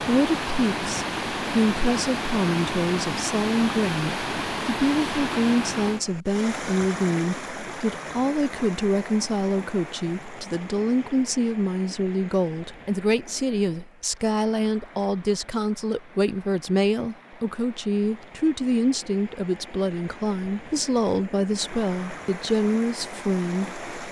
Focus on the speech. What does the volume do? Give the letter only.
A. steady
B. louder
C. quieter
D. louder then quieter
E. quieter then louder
A.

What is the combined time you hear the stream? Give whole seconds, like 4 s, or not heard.
24 s.